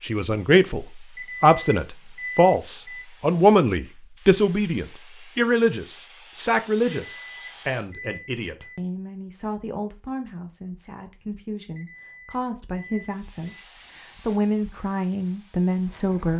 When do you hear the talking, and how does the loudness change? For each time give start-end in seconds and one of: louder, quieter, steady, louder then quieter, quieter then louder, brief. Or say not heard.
0.0-16.3 quieter then louder.